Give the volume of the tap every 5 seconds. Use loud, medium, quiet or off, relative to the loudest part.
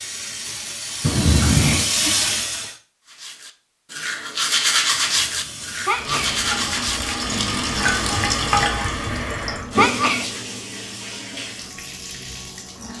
loud, loud, medium.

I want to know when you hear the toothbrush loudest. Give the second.
5 s.